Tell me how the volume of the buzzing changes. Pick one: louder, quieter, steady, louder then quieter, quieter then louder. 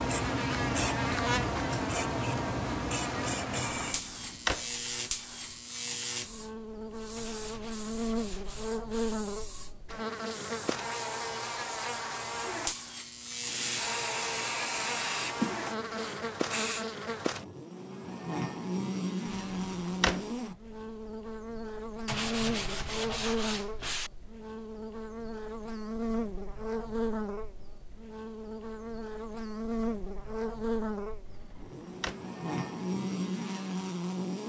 steady.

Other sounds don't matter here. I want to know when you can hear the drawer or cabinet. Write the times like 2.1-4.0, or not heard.
3.8-4.7, 19.4-20.4, 31.2-32.2.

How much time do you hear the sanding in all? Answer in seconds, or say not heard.
4 s.